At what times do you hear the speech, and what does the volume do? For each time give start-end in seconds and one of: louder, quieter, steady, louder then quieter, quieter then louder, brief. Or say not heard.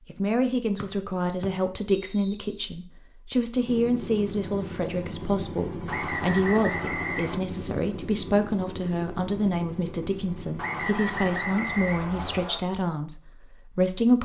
0.1-14.2 steady.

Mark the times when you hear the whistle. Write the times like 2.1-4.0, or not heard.
0.8-2.4, 5.8-7.4, 10.6-12.6.